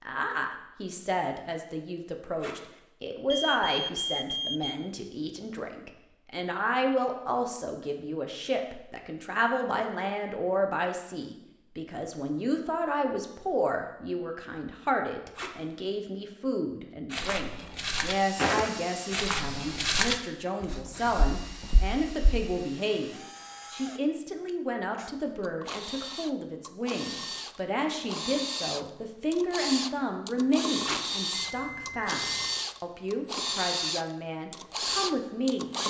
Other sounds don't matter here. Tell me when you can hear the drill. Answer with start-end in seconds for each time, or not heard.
18.1-35.8.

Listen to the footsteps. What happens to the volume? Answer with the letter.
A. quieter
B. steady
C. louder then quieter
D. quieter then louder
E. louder
C.